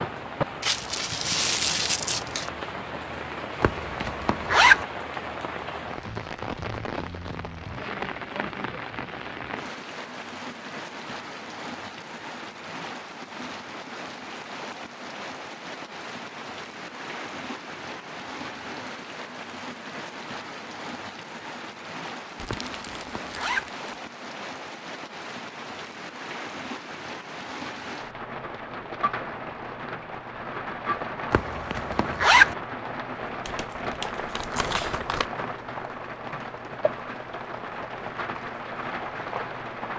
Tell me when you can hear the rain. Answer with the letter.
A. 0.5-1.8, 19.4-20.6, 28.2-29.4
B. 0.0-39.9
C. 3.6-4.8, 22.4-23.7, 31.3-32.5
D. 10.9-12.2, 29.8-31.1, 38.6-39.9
B.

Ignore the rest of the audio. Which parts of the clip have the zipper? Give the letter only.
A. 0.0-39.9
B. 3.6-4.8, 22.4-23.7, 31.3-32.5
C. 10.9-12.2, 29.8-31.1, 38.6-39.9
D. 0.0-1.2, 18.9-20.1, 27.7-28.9
B.